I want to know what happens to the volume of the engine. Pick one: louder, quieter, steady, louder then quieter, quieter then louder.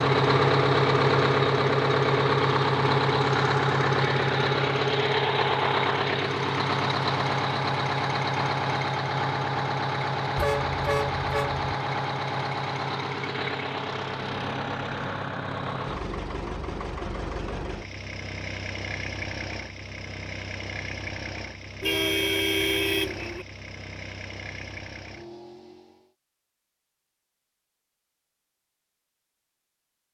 quieter.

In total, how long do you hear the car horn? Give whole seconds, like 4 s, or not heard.
3 s.